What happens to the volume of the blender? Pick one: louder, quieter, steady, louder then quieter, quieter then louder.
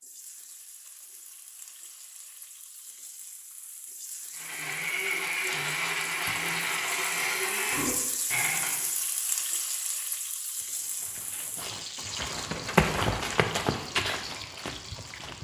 steady.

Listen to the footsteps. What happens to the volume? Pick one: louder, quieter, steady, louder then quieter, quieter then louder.
louder then quieter.